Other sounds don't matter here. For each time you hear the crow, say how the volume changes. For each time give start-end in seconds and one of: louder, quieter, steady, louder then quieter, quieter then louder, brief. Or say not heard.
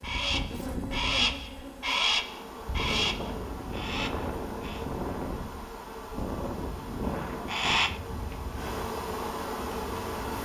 0.0-4.8 quieter
7.3-8.8 brief.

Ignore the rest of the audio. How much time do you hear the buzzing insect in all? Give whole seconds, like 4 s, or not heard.
10 s.